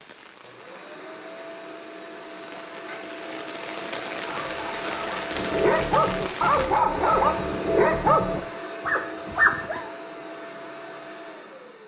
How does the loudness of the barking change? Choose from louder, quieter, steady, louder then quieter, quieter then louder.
louder.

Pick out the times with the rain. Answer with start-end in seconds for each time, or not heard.
0.0-6.9.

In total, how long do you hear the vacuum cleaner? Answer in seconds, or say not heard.
12 s.